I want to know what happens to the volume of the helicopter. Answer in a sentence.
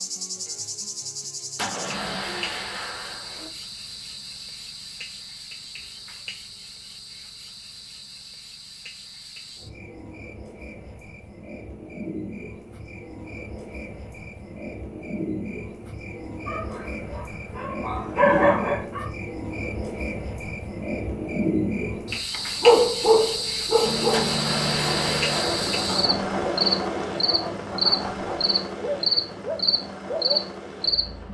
The volume of the helicopter goes down.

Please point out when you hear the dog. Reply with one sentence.
You can hear the dog from 16.4 to 19.1 s and from 22.3 to 30.4 s.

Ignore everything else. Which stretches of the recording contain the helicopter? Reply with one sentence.
The helicopter can be heard from 23.8 to 31.2 s.